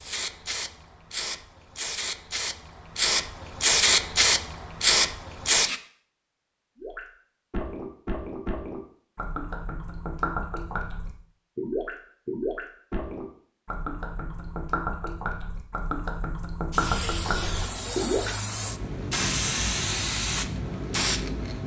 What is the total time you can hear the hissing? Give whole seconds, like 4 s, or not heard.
11 s.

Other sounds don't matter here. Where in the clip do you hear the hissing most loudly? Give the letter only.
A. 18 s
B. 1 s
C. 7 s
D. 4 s
D.